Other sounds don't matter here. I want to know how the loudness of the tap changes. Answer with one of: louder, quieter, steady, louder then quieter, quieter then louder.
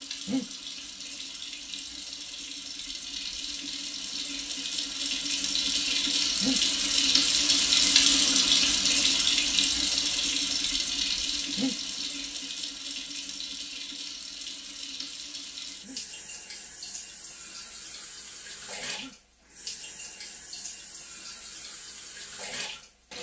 louder then quieter.